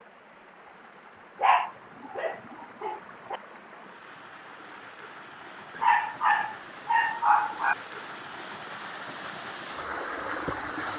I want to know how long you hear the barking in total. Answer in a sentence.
You can hear the barking for 4 seconds altogether.